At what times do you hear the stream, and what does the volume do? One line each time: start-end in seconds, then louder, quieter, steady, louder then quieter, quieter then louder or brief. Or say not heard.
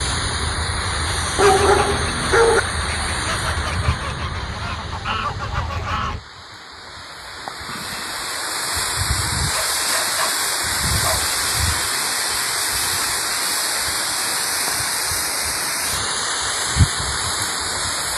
0.0-18.1 quieter then louder.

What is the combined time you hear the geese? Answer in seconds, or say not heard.
6 s.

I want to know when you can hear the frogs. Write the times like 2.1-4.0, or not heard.
not heard.